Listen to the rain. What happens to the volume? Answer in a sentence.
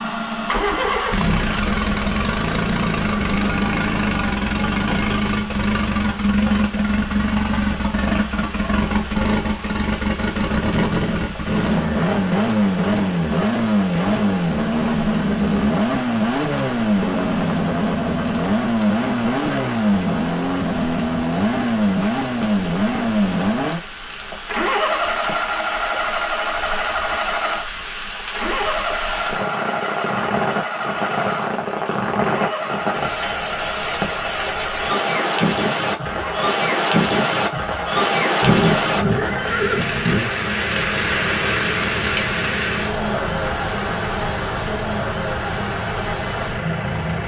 The loudness of the rain goes up.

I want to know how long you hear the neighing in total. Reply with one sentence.
You can hear the neighing for 2 seconds altogether.